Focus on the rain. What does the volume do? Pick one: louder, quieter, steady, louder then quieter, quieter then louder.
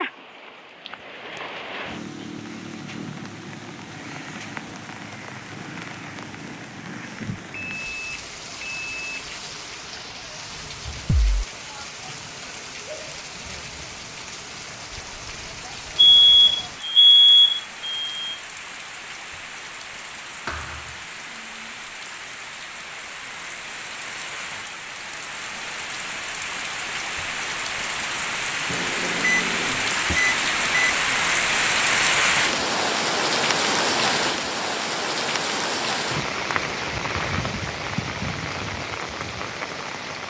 louder.